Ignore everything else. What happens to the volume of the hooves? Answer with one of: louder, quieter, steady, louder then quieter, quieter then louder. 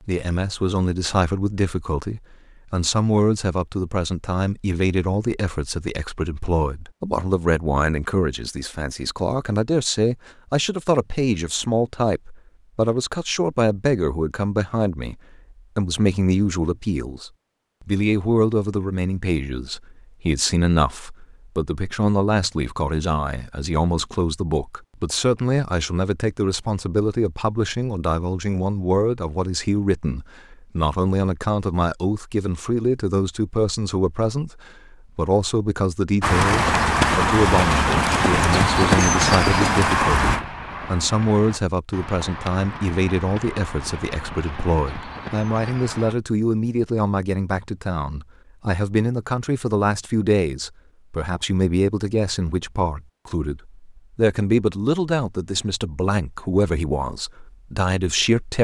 quieter.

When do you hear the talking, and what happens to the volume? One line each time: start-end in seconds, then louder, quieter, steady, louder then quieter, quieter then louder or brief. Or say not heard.
0.1-58.5 steady.